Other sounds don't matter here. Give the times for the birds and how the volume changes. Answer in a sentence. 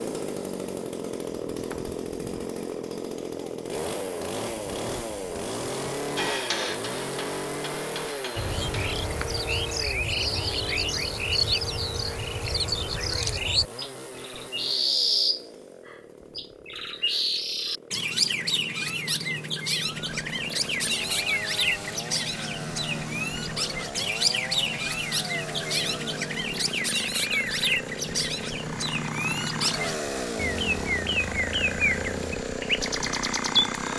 You can hear the birds from 8.3 to 33.8 s, at a steady volume.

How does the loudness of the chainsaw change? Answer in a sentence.
The volume of the chainsaw goes down, then up.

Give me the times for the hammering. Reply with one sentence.
The hammering can be heard from 6.2 to 8.7 s.